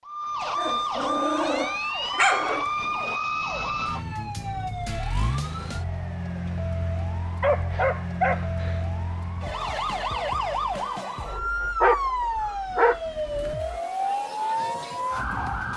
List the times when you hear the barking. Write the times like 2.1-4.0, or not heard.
0.4-3.1, 7.4-8.8, 11.2-13.8.